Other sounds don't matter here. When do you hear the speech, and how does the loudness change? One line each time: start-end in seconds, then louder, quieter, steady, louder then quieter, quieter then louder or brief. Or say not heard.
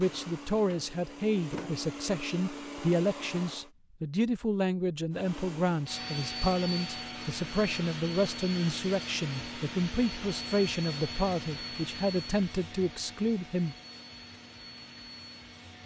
0.0-13.8 steady.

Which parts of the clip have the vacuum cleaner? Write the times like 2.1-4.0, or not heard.
0.0-3.7, 5.1-15.8.